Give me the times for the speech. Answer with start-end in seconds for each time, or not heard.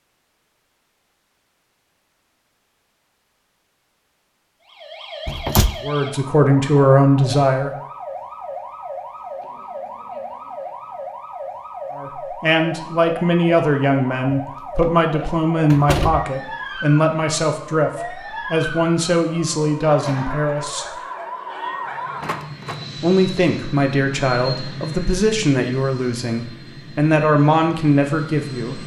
5.8-7.8, 11.9-20.9, 23.0-28.8.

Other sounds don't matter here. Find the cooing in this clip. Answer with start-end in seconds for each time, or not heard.
not heard.